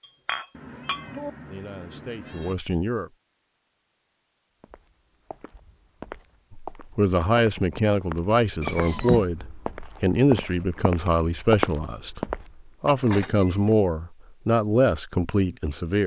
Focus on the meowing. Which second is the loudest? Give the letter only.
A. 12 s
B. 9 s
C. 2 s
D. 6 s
B.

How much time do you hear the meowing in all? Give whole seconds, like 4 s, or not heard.
3 s.